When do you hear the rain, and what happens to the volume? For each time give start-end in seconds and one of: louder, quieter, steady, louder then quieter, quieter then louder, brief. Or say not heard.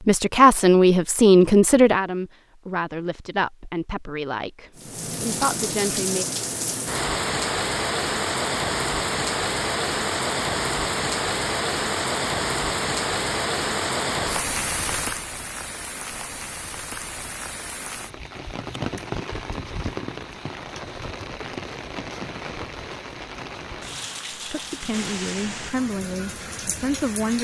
4.8-27.3 quieter.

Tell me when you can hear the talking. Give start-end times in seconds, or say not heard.
0.1-6.2, 24.3-27.3.